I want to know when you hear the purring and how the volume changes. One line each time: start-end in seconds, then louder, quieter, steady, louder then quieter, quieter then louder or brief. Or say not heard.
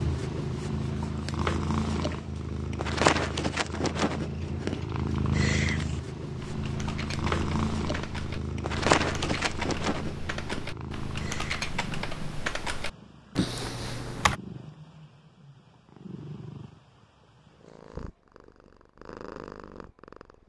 0.0-20.4 quieter.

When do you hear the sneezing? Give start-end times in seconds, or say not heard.
not heard.